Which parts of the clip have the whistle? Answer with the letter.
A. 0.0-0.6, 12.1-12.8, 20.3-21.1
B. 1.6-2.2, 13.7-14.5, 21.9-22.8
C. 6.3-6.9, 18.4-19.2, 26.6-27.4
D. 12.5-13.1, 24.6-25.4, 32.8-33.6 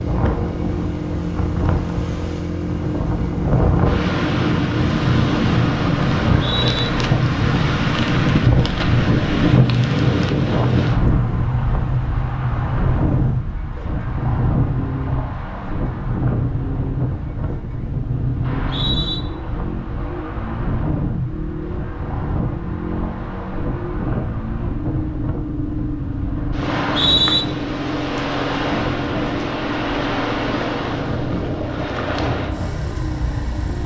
C.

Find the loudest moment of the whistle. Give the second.
27 s.